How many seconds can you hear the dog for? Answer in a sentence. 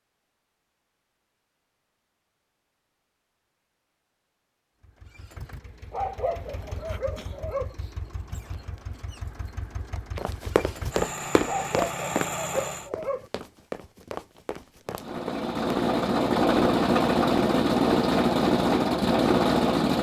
You can hear the dog for 4 seconds altogether.